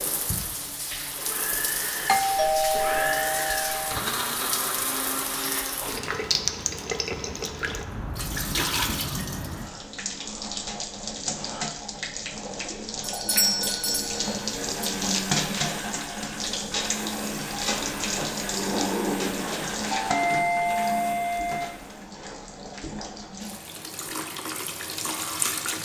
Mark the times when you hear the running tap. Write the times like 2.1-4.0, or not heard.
0.0-25.7.